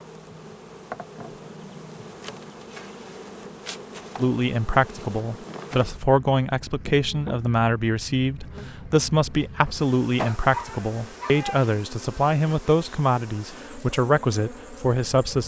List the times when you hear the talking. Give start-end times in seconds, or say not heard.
4.2-15.4.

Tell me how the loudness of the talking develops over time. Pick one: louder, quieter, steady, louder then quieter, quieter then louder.
steady.